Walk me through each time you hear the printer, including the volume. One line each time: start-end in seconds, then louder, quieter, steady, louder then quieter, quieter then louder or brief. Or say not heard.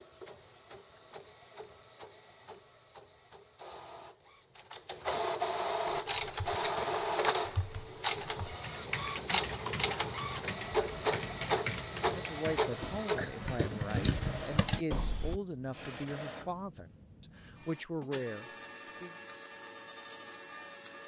0.0-21.0 louder then quieter.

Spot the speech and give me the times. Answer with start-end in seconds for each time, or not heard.
11.9-19.1.